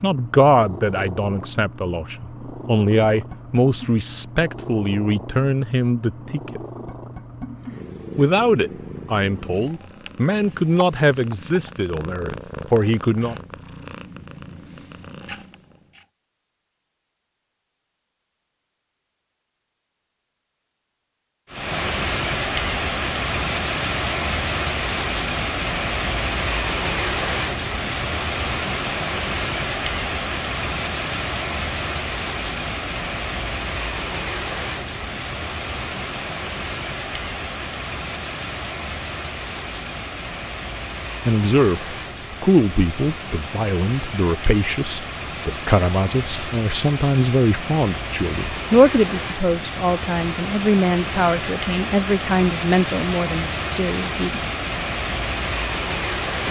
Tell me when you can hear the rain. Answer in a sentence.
The rain can be heard from 21.5 to 56.4 s.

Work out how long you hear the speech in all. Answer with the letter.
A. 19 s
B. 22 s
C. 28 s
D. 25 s
D.